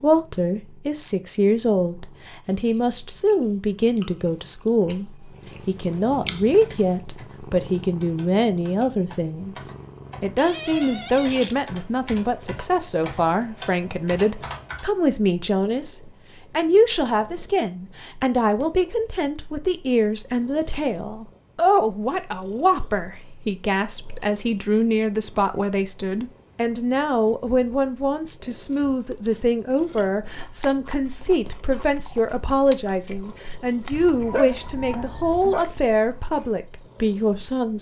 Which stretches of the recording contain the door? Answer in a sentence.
You can hear the door from 10.3 to 11.6 s.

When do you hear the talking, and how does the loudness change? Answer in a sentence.
The talking can be heard from 0.0 to 37.7 s, at a steady volume.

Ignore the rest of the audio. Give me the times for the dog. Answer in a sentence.
The dog can be heard from 33.9 to 35.6 s.